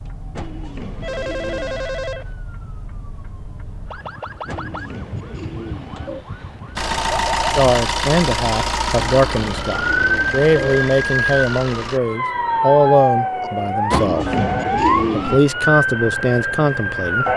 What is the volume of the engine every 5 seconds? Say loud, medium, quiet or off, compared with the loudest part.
off, loud, medium, off.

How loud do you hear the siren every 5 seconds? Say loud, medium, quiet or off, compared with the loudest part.
quiet, medium, loud, loud.